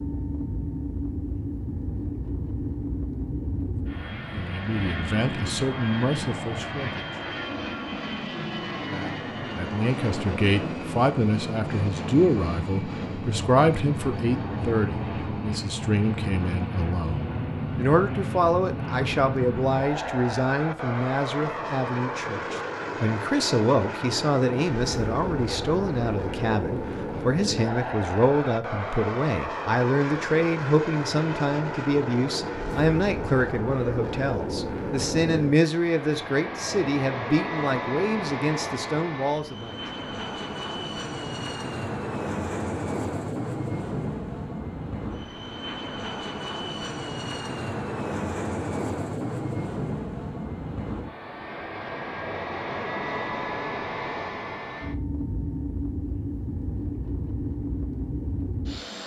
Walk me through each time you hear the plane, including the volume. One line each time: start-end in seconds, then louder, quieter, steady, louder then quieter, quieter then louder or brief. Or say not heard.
0.0-59.0 steady.